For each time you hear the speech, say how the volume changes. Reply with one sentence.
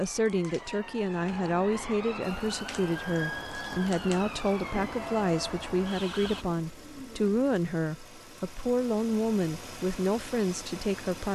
You can hear the speech from 0.0 to 11.3 s, at a steady volume.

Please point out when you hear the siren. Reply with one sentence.
You can hear the siren from 0.0 to 6.5 s.